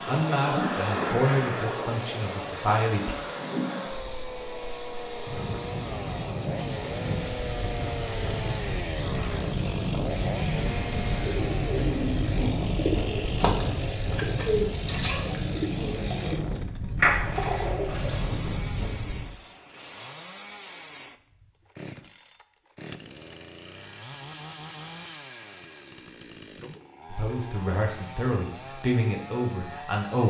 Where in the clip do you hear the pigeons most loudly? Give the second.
15 s.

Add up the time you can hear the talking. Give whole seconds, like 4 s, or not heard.
6 s.